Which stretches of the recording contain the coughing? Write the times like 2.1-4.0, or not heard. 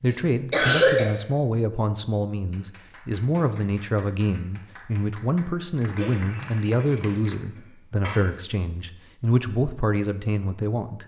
0.1-1.1, 6.0-8.2.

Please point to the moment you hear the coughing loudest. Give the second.
1 s.